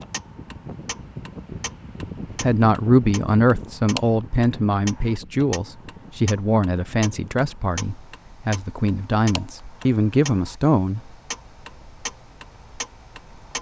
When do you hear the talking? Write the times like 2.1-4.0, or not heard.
2.4-11.0.